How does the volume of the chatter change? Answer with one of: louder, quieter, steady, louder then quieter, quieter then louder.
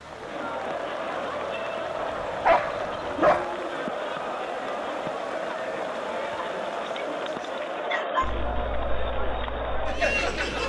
steady.